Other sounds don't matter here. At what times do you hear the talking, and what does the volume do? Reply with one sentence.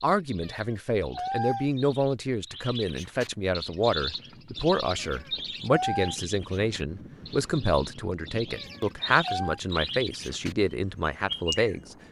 The talking can be heard from 0.0 to 11.9 s, at a steady volume.